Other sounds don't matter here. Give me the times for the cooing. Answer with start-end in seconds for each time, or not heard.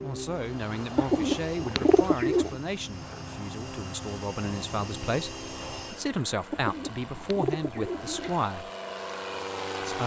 0.9-2.5, 6.5-8.4.